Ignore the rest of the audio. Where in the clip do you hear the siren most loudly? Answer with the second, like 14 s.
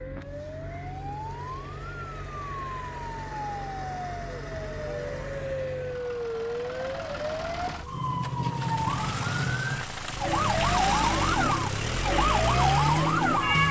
13 s.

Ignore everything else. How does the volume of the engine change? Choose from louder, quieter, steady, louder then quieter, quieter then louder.
louder.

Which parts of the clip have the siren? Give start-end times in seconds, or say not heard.
0.0-13.6.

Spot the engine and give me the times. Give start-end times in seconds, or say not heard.
0.0-13.6.